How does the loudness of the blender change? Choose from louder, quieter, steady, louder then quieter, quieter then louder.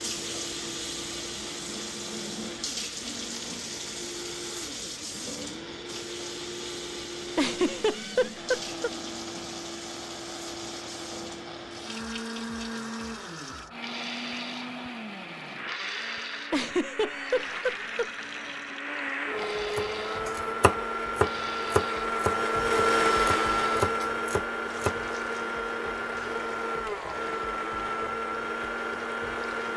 louder.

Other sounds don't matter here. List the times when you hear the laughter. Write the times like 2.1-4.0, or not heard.
7.3-8.9, 16.5-18.1.